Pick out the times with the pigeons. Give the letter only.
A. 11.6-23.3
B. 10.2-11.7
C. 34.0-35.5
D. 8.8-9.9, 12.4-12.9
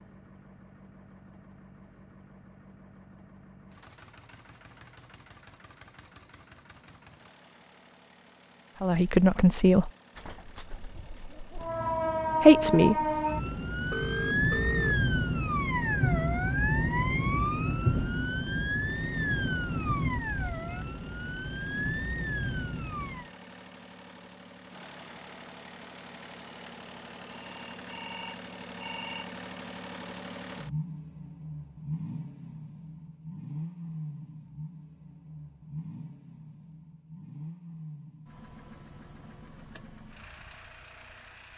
B.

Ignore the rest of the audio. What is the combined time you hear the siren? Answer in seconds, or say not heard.
12 s.